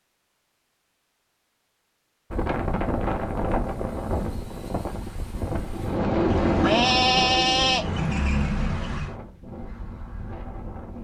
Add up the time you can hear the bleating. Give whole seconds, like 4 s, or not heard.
3 s.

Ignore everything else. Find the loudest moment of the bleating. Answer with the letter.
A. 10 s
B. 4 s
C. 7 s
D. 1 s
C.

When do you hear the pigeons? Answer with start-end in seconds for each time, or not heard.
5.5-8.1.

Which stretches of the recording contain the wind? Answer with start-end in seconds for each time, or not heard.
2.3-10.9.